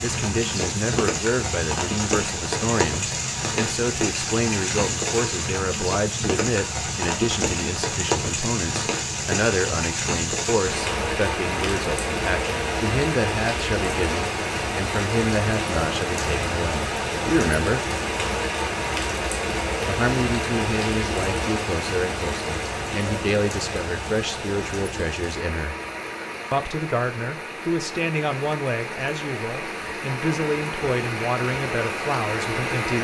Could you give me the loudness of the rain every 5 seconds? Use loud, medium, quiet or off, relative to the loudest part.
loud, loud, loud, loud, loud, medium, loud.